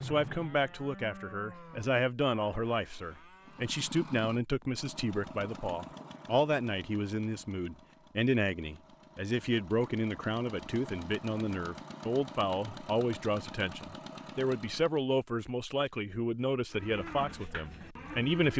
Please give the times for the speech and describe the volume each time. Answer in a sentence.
You can hear the speech from 0.0 to 18.5 s, at a steady volume.